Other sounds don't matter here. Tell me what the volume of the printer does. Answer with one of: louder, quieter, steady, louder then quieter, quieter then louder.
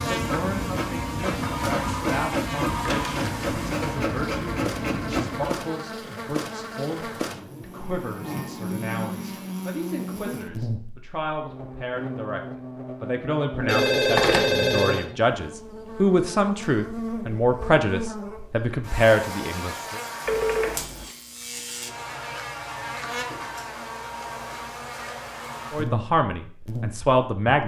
steady.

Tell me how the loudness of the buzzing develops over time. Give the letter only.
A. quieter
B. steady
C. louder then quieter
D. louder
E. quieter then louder
B.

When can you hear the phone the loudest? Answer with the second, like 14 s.
14 s.